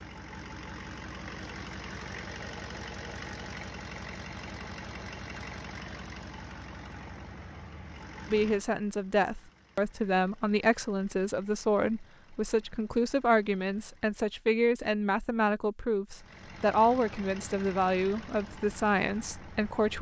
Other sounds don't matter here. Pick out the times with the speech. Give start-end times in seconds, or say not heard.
8.3-19.9.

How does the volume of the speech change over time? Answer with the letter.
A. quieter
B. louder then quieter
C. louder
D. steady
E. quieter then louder
D.